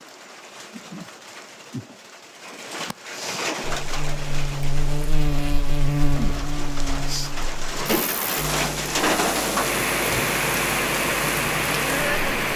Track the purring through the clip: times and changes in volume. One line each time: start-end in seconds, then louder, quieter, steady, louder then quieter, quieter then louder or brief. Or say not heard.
not heard.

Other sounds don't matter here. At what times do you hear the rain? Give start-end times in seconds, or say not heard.
0.0-12.5.